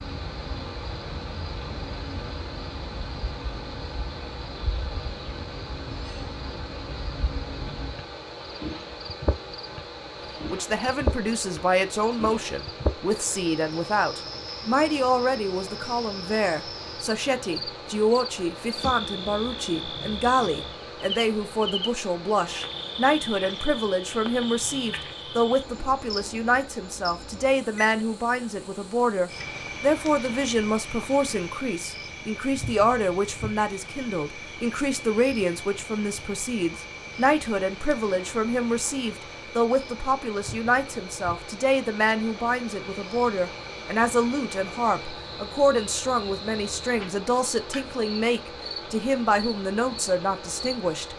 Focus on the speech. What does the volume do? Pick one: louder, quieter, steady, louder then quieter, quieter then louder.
steady.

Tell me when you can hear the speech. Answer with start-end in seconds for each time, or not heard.
10.5-51.1.